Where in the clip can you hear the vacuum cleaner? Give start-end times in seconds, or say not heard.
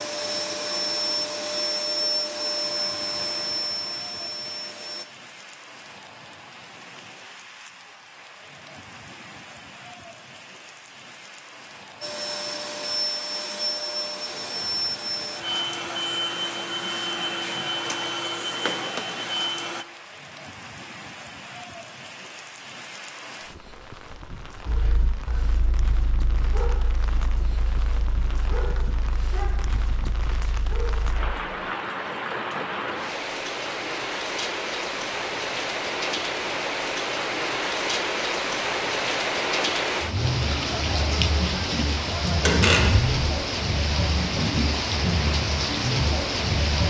0.0-5.0, 12.0-19.9.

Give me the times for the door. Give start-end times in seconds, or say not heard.
42.5-43.1.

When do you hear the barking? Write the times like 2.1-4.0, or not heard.
24.6-31.3.